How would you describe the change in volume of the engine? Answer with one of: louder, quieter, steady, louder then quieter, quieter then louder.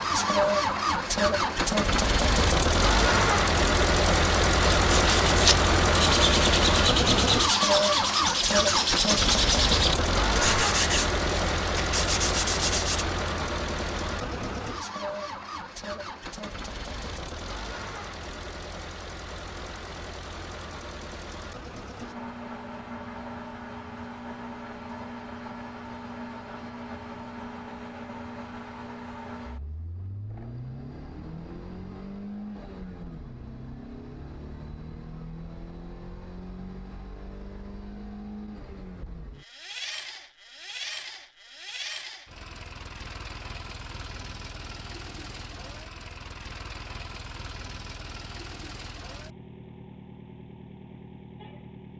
quieter.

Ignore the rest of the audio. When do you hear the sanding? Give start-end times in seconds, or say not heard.
4.8-13.1.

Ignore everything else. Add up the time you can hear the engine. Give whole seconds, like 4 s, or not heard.
52 s.